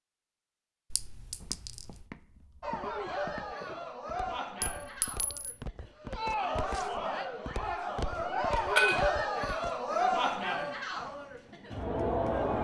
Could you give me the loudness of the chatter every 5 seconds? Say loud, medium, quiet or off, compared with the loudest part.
medium, loud, loud.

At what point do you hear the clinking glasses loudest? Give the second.
9 s.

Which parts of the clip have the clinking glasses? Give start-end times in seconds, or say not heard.
0.9-1.7, 4.6-5.5, 8.5-9.1.